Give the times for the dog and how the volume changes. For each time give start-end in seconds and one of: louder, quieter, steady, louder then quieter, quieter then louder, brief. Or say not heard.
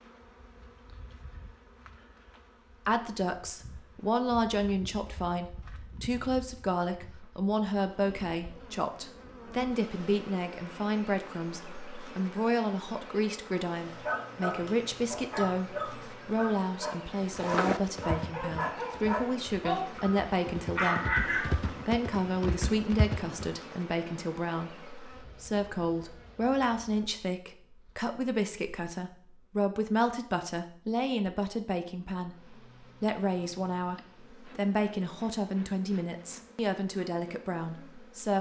13.8-21.8 louder.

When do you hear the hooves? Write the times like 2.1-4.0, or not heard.
17.1-23.6.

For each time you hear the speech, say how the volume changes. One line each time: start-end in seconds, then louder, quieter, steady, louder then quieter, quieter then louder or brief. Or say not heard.
2.9-38.3 steady.